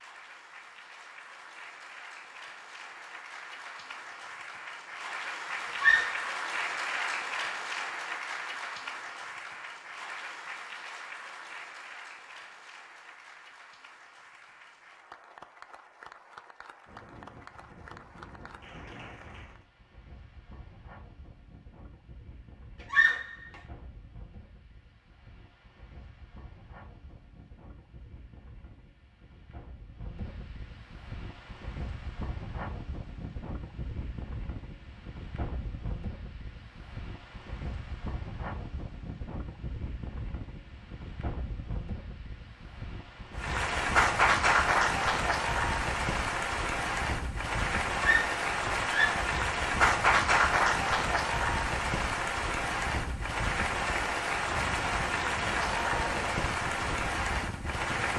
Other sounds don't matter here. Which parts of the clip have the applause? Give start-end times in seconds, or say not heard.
0.0-19.6, 43.4-58.1.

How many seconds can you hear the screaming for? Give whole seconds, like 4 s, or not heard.
3 s.